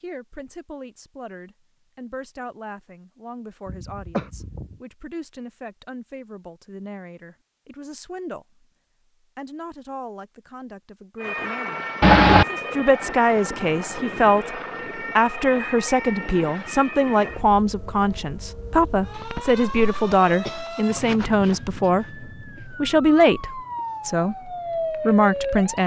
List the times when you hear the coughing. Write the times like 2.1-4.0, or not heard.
3.6-4.8, 12.0-12.4, 19.1-21.1.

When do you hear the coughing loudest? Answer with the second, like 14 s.
12 s.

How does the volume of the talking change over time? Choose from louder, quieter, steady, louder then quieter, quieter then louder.
louder.